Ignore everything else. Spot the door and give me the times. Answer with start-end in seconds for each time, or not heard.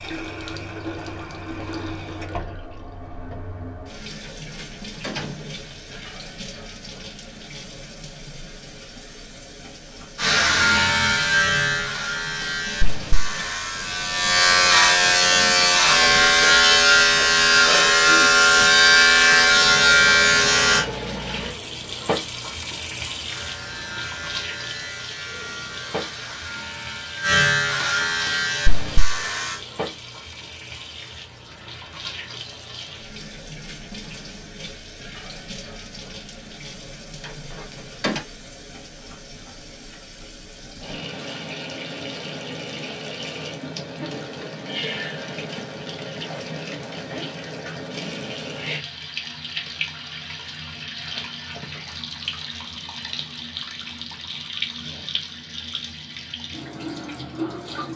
4.2-6.0, 37.2-38.2.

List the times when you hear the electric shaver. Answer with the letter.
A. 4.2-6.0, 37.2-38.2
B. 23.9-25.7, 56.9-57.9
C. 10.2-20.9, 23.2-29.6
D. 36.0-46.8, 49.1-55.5
C.